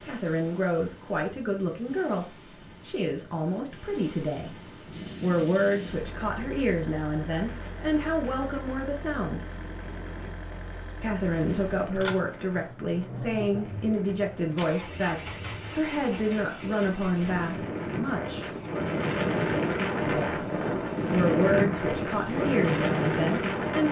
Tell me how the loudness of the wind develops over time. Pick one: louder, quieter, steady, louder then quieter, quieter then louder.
louder.